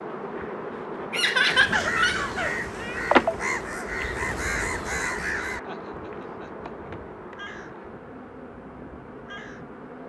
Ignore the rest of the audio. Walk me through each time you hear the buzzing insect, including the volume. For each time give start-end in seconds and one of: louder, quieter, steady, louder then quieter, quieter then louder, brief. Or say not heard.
0.0-10.0 louder then quieter.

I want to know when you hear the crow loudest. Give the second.
3 s.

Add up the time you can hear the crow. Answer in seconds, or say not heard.
8 s.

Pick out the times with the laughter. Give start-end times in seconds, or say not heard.
1.1-3.0, 5.5-6.7.